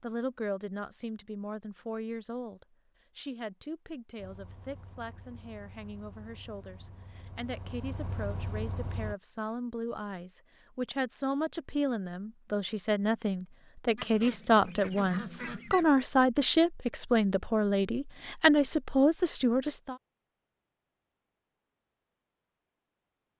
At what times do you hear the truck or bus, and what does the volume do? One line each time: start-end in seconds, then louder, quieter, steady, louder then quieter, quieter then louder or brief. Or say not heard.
4.2-9.2 louder.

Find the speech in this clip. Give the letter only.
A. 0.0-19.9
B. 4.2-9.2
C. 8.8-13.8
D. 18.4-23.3
A.